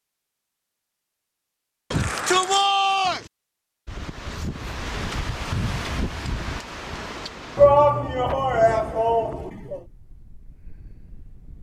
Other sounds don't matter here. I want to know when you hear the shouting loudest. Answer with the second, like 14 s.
8 s.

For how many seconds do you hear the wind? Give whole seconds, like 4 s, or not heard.
8 s.